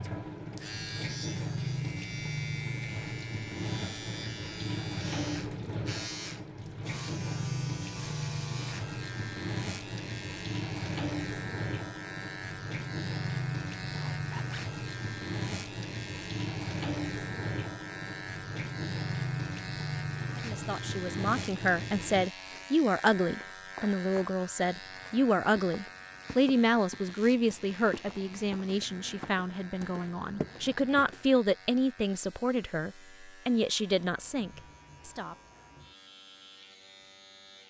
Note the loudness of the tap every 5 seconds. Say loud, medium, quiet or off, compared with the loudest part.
loud, loud, loud, loud, loud, off, off, off.